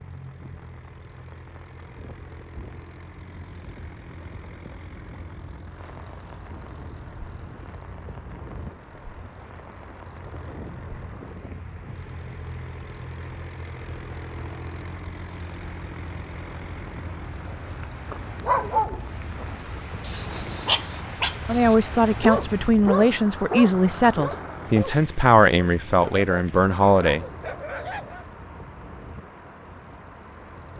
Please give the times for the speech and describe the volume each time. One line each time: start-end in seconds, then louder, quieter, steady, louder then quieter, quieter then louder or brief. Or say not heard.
21.4-27.2 steady.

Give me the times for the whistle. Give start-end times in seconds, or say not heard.
not heard.